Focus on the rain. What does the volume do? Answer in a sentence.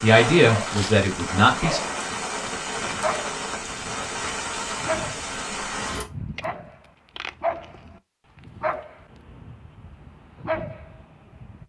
The volume of the rain stays about the same.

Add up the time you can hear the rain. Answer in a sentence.
The rain can be heard for 6 seconds in total.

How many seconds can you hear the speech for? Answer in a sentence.
The speech can be heard for 2 seconds in total.